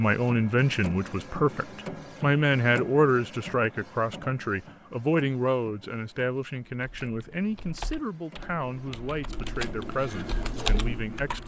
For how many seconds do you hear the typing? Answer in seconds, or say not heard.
5 s.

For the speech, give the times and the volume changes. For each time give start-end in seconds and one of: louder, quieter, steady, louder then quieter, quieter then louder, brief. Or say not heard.
0.0-11.4 quieter.